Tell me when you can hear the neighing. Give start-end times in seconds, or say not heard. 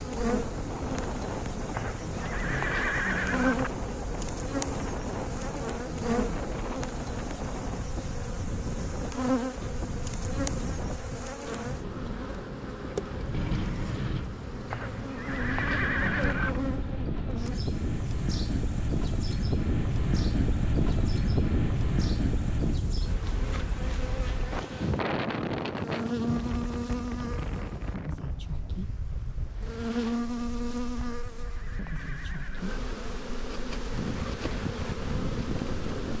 1.7-3.7, 14.7-16.6, 30.9-32.8.